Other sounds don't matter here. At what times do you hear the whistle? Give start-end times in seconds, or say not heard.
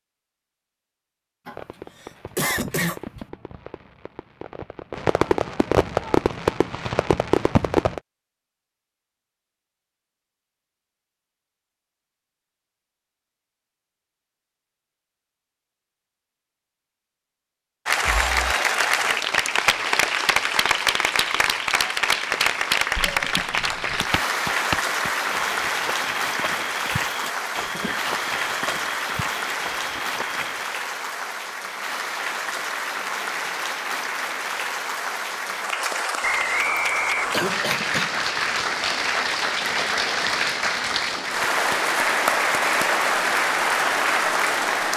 36.2-37.8.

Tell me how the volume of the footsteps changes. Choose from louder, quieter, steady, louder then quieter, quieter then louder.
quieter.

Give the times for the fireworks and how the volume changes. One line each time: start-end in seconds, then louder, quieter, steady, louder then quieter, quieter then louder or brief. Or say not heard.
1.4-8.0 louder.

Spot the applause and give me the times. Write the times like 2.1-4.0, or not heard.
17.9-44.9.